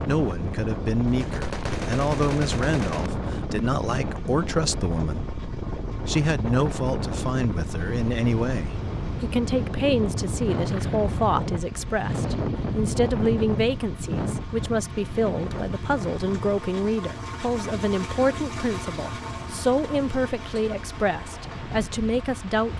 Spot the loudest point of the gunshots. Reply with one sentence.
The volume of the gunshots peaks at 2 seconds.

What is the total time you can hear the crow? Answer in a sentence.
You can't hear the crow here.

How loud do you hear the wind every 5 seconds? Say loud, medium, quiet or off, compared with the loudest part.
loud, loud, loud, medium, medium.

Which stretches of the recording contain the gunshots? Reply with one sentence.
The gunshots can be heard from 1.1 to 3.1 s.